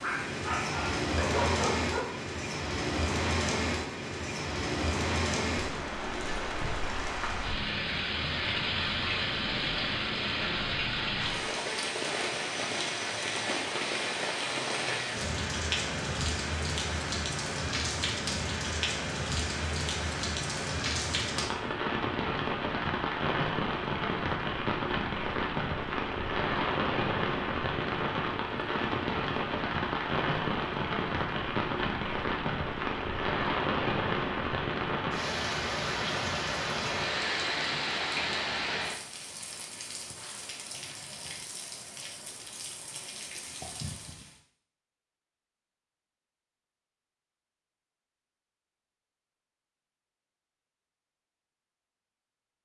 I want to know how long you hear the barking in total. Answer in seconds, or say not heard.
2 s.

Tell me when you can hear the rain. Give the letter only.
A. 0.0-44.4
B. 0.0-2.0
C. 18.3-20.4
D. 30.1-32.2
A.